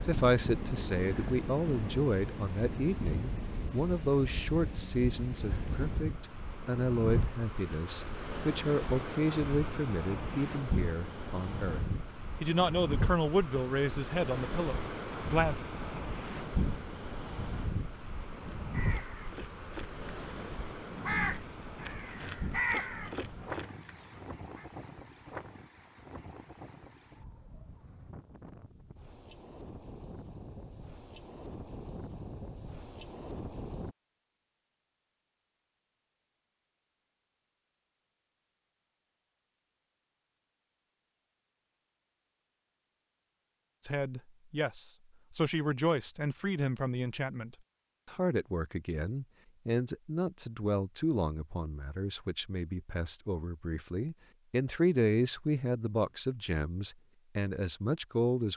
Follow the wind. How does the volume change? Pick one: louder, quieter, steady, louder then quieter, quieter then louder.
quieter.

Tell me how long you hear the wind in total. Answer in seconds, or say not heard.
34 s.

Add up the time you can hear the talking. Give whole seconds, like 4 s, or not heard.
30 s.